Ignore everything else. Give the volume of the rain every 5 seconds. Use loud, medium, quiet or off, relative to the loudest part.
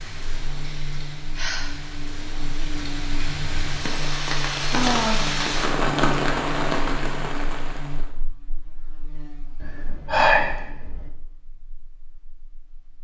medium, loud, off.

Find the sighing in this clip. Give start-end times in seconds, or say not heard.
0.6-1.7, 4.7-5.5, 9.6-11.1.